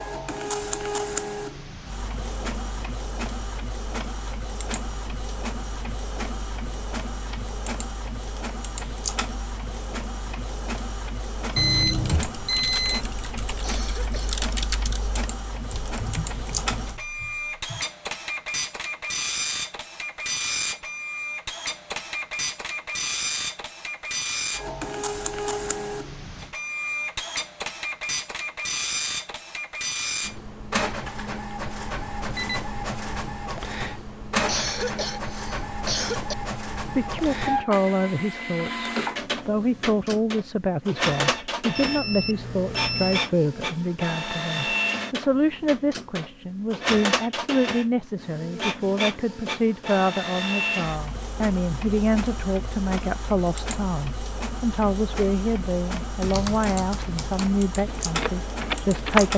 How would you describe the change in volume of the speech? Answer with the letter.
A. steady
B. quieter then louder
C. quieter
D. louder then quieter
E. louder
A.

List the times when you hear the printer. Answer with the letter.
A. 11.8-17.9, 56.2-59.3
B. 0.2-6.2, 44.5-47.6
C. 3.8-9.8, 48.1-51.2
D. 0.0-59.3
D.